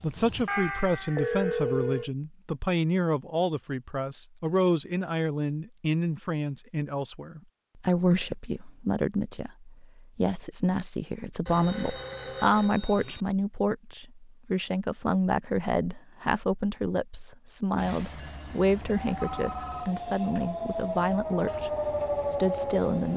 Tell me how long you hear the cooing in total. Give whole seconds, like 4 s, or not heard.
not heard.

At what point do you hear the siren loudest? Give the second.
22 s.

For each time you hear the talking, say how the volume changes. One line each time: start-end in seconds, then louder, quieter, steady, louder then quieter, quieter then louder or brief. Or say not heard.
0.0-21.7 steady
22.3-23.1 brief.